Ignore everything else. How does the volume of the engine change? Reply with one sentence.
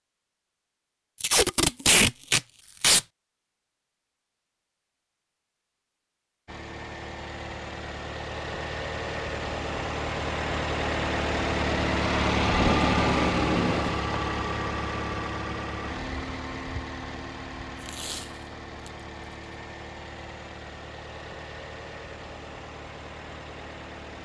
The volume of the engine goes up, then down.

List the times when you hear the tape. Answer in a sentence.
The tape can be heard from 1.2 to 3.0 s, from 12.4 to 14.0 s and from 17.8 to 18.9 s.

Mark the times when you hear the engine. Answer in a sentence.
You can hear the engine from 6.5 to 24.1 s.